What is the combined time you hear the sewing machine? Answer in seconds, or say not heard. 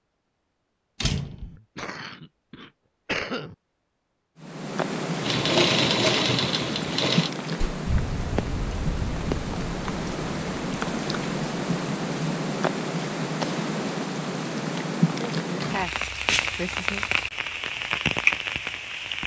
2 s.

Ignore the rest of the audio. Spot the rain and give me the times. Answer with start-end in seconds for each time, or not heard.
4.4-19.2.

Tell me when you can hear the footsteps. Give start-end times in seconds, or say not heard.
not heard.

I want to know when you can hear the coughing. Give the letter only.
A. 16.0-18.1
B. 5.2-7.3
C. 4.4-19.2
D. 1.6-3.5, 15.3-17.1
D.